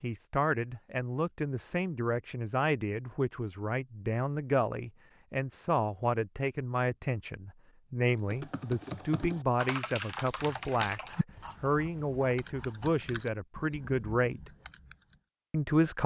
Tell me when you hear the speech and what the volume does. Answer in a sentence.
You can hear the speech from 0.0 to 14.5 s, at a steady volume; and briefly from 15.5 to 16.0 s.